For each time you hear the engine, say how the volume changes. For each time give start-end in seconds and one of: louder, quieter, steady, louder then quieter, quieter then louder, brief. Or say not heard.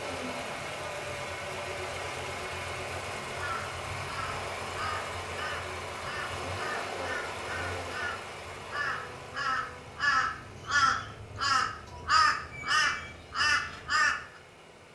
0.0-14.9 quieter.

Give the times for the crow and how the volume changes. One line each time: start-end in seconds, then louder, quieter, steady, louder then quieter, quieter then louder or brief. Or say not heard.
3.4-14.2 louder.